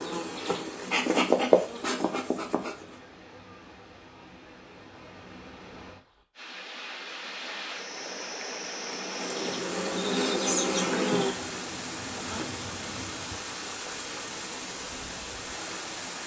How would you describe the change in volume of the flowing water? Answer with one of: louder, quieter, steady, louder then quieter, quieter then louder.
louder.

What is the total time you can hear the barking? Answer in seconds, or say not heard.
not heard.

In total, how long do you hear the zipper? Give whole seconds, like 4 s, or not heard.
2 s.